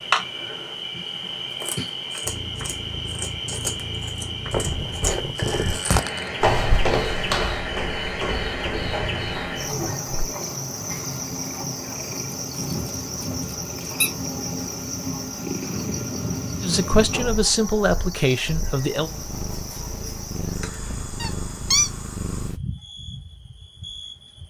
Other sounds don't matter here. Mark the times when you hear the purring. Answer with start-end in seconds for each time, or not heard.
2.2-5.0, 8.7-22.6.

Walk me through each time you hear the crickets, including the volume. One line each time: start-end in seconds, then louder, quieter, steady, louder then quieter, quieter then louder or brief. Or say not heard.
0.0-24.4 quieter.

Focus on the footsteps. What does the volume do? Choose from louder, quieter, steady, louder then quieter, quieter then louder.
louder then quieter.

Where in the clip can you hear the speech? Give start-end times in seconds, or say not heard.
16.6-19.1.